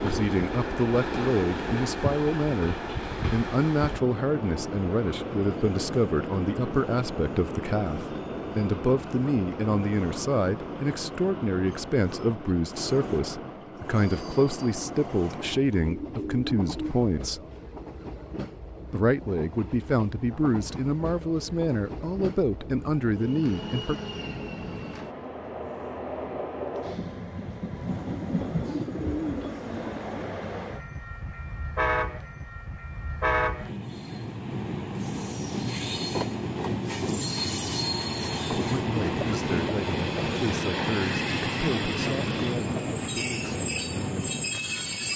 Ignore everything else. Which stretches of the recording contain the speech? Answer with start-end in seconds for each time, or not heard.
0.0-17.4, 18.9-24.0, 38.5-44.3.